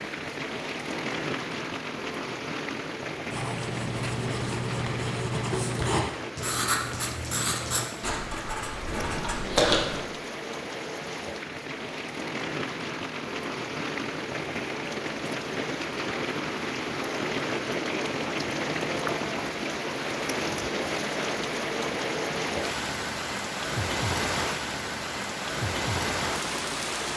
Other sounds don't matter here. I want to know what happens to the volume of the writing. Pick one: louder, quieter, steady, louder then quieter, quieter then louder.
steady.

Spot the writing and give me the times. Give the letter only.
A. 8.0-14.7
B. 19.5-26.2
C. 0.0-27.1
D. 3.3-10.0
D.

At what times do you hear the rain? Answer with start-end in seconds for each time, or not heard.
0.0-27.1.